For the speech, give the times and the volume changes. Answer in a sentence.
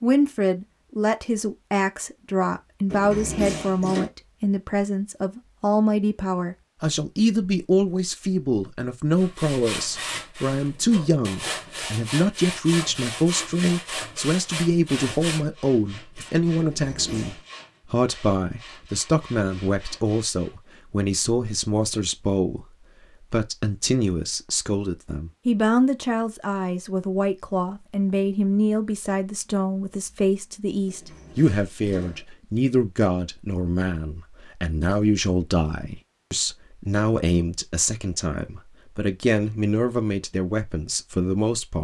You can hear the speech from 0.0 to 41.8 s, at a steady volume.